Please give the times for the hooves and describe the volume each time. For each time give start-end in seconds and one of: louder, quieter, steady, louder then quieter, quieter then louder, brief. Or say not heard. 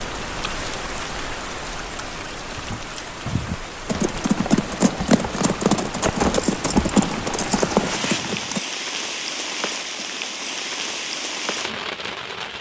3.2-8.6 steady.